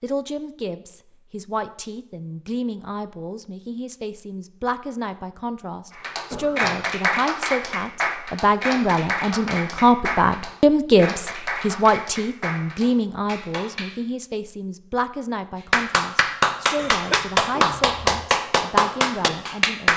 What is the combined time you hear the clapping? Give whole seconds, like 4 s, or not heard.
12 s.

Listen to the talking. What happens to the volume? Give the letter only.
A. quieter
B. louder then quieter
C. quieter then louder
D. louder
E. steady
B.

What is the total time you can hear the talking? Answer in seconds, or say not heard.
20 s.